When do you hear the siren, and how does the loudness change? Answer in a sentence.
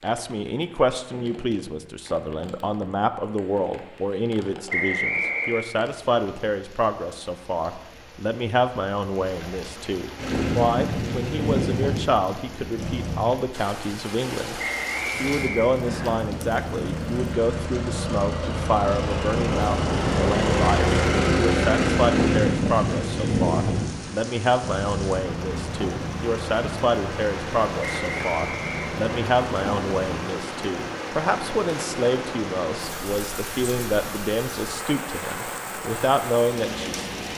The siren can't be heard in this clip.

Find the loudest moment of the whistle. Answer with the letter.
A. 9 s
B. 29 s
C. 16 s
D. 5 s
D.